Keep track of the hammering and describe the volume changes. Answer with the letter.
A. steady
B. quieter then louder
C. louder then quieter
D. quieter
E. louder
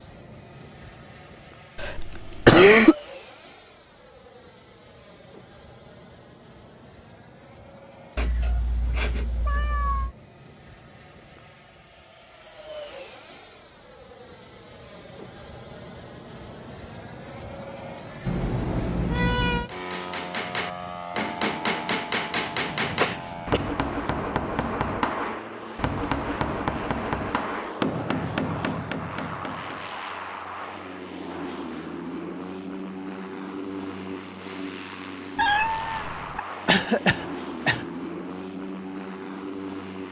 A.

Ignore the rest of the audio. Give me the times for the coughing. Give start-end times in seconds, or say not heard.
1.8-3.0, 22.9-23.6, 36.6-37.9.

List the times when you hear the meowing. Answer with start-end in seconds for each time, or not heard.
8.2-10.2, 18.2-19.7, 35.4-36.4.